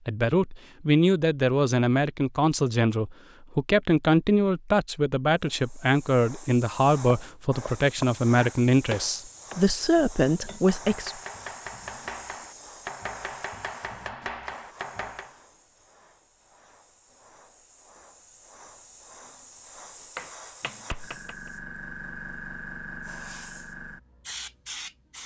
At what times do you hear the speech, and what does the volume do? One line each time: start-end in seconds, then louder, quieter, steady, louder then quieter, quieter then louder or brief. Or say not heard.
0.1-11.2 steady.